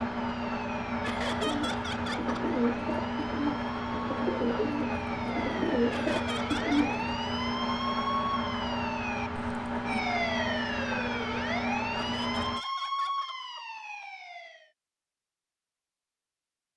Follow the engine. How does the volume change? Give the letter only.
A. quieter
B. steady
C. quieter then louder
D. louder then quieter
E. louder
B.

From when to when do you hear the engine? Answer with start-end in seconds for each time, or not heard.
0.0-12.7.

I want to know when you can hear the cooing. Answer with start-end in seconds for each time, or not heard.
1.4-7.2.